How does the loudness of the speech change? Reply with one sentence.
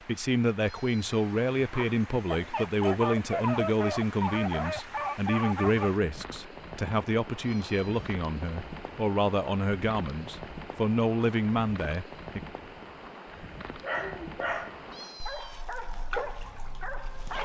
The volume of the speech stays about the same.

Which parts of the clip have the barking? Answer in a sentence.
You can hear the barking from 1.7 to 6.0 s and from 13.7 to 17.4 s.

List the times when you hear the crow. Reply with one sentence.
You can't hear the crow here.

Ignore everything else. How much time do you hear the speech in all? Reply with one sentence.
The speech can be heard for 12 seconds in total.